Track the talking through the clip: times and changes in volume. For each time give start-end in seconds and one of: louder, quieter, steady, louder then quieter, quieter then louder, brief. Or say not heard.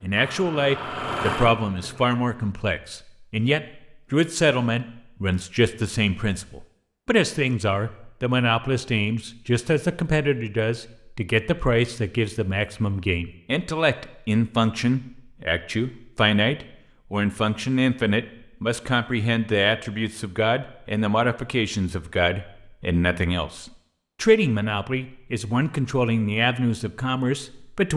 0.0-27.9 steady.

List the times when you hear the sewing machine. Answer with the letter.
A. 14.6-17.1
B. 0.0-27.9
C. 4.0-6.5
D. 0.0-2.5
D.